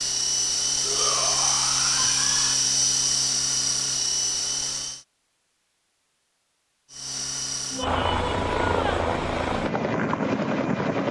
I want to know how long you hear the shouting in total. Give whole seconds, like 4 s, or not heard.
3 s.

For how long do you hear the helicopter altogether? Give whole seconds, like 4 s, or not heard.
9 s.